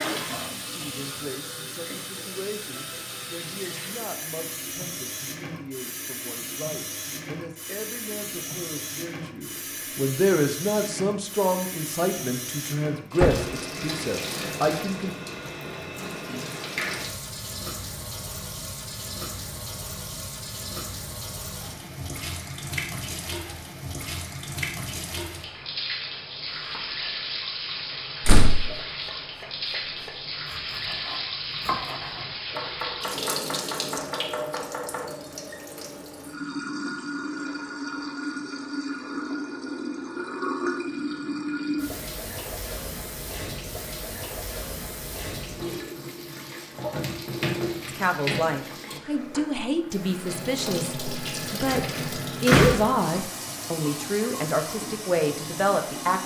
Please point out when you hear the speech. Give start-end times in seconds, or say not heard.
0.0-15.2, 47.9-56.2.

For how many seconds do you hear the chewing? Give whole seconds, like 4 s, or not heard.
not heard.